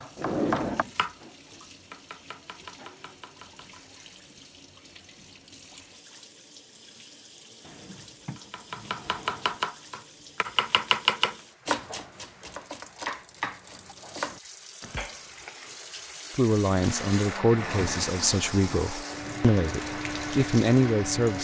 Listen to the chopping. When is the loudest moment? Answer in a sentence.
The loudest moment of the chopping is at 11 seconds.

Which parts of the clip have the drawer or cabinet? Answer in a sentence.
You can hear the drawer or cabinet from 0.1 to 0.9 s, from 7.6 to 9.6 s and from 17.6 to 18.6 s.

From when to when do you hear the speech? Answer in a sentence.
You can hear the speech from 16.4 to 21.3 s.